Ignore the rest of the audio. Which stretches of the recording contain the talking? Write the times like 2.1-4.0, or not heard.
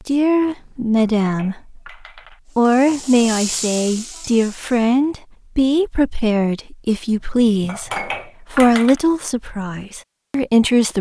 0.1-1.8, 2.5-10.9.